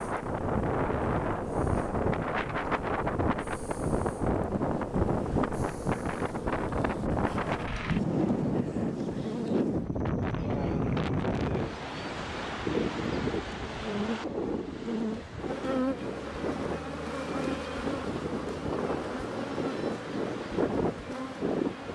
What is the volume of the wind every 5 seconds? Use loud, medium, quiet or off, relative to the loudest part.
loud, loud, loud, medium, loud.